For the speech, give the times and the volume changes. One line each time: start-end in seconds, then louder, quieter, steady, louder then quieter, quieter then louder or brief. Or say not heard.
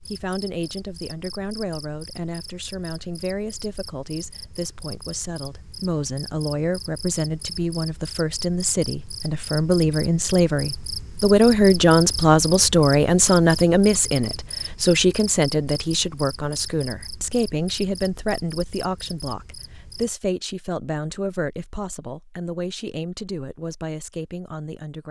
0.0-25.0 louder then quieter.